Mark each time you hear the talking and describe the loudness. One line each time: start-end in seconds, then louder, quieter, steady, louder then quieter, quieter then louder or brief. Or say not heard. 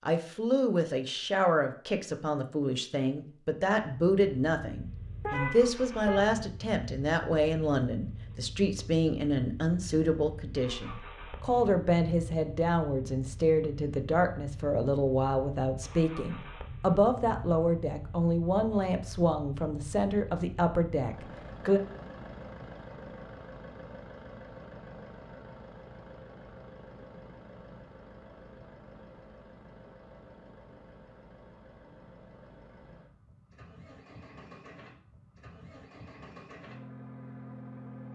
0.0-21.8 steady.